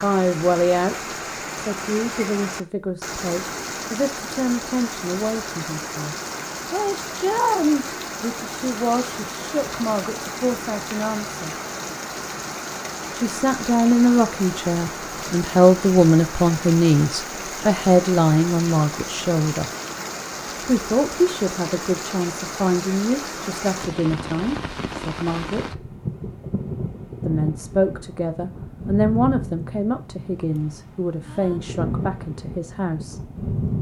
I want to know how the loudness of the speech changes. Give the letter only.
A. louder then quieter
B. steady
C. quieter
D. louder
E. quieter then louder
A.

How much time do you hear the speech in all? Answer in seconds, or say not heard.
29 s.